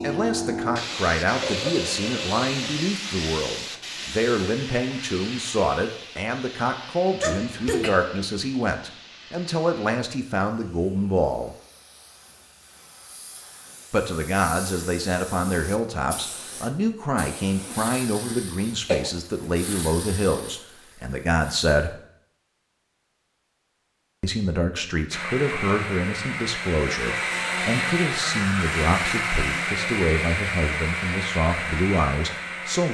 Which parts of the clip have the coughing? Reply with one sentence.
The coughing can be heard from 7.2 to 7.9 s and from 17.6 to 19.1 s.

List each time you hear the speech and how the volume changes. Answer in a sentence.
The speech can be heard from 0.0 to 11.6 s, at a steady volume; from 13.9 to 21.9 s, at a steady volume; and from 24.2 to 32.8 s, at a steady volume.